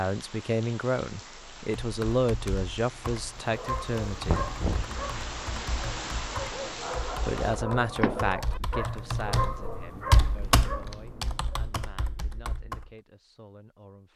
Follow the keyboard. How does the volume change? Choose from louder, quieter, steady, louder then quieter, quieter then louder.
louder.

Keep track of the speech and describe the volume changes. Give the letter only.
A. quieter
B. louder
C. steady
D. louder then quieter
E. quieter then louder
A.